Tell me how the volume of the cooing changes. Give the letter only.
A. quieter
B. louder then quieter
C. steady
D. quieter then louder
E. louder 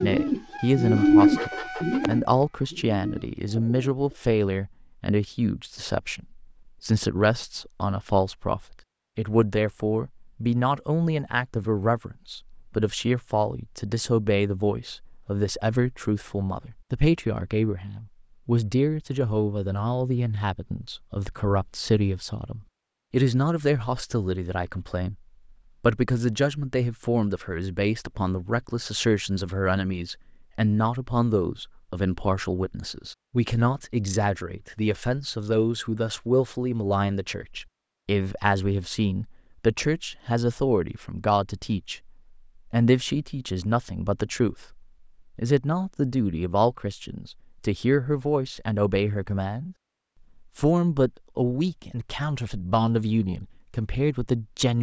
B.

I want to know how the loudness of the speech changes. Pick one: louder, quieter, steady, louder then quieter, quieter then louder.
steady.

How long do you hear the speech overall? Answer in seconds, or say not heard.
53 s.